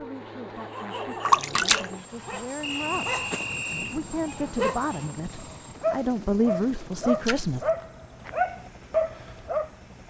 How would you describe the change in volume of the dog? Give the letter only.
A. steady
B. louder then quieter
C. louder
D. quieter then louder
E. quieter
C.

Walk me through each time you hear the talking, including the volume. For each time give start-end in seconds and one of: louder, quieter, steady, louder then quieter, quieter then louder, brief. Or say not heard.
0.0-7.6 louder.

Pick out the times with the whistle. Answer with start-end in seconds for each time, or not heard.
2.6-4.0.